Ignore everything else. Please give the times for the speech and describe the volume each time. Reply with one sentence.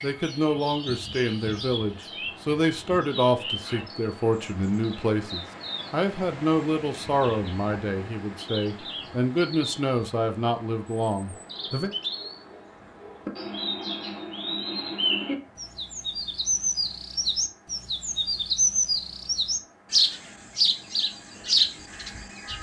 You can hear the speech from 0.0 to 11.9 s, at a steady volume.